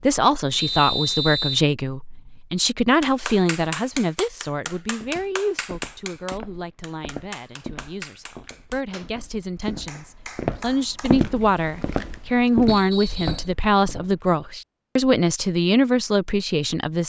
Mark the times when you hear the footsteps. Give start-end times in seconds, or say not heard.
4.9-14.2.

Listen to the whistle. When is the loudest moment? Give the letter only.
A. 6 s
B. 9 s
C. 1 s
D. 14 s
C.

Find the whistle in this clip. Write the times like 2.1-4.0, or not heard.
0.6-1.6, 12.7-13.5.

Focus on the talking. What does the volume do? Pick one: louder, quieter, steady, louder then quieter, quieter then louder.
quieter then louder.